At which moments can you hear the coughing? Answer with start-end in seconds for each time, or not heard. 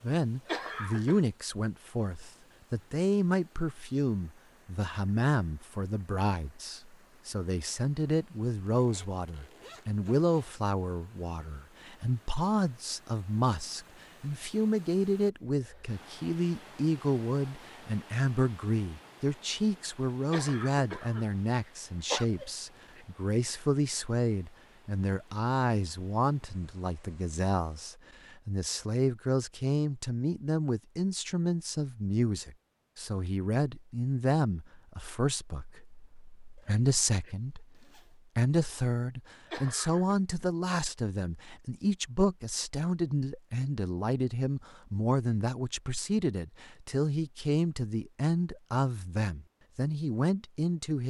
0.5-1.2, 20.3-22.2, 39.5-40.1.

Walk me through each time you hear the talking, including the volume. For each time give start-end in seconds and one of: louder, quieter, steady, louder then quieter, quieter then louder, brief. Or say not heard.
0.0-37.6 steady
38.4-51.0 steady.